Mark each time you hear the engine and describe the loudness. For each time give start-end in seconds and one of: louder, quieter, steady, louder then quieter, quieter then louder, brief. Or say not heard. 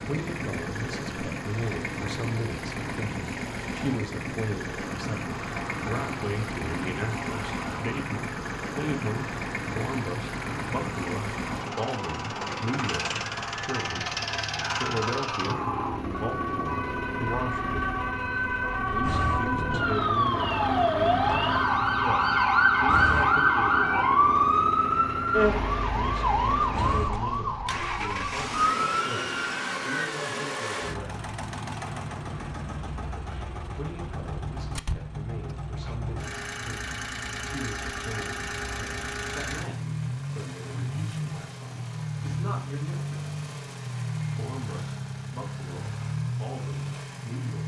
0.0-47.6 steady.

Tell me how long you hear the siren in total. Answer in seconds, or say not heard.
25 s.